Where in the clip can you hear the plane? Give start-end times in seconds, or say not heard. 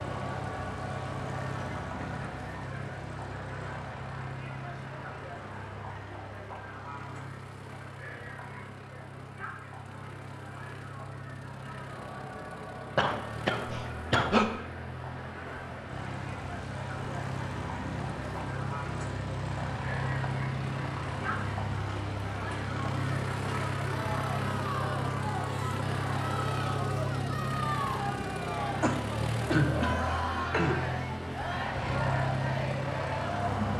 0.0-33.7.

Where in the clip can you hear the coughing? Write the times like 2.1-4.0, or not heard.
12.9-14.5, 28.8-30.8.